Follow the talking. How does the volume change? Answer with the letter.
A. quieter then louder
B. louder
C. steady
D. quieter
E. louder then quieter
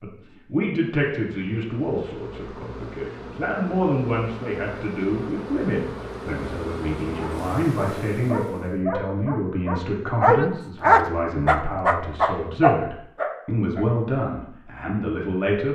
C.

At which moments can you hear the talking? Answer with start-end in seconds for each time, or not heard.
0.0-15.7.